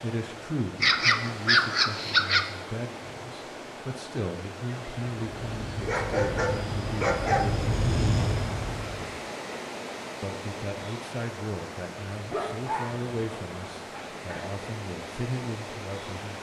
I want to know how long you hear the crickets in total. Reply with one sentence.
The crickets can't be heard in this clip.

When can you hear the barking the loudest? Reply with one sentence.
The loudest moment of the barking is at 2 seconds.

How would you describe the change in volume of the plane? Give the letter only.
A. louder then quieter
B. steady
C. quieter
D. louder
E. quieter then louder
A.